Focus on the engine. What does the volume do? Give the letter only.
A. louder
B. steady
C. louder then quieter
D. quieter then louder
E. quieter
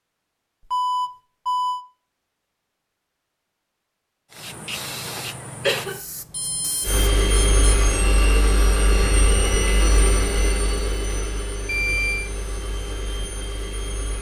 E.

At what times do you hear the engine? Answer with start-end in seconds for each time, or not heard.
6.8-14.1.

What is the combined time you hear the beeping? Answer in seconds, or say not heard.
3 s.